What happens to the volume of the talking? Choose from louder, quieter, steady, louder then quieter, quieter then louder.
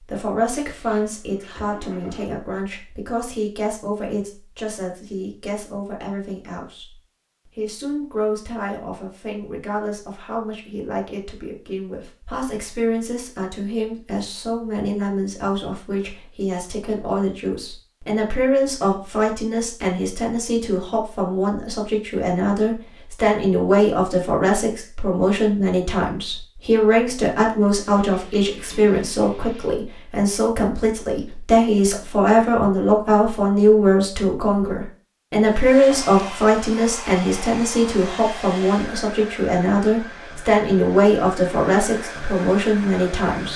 louder.